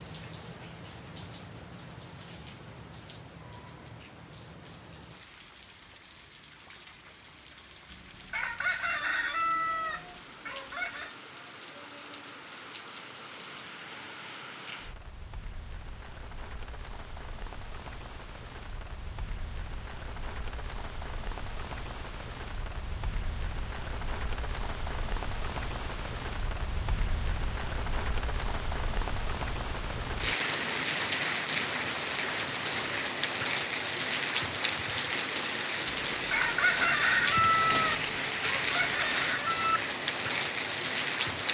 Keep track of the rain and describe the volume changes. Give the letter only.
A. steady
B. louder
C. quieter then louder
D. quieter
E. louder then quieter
B.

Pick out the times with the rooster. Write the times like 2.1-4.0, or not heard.
7.9-11.2, 36.1-39.8.